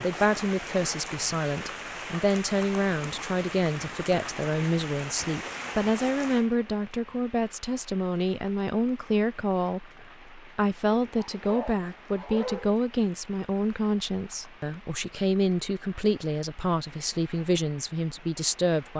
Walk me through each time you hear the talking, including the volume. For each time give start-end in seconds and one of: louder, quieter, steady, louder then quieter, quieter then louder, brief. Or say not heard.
0.0-18.9 steady.